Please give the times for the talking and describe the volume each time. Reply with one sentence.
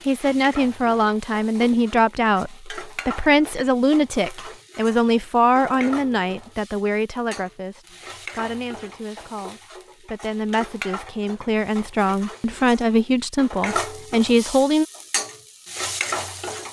You can hear the talking from 0.1 to 14.8 s, getting quieter then louder.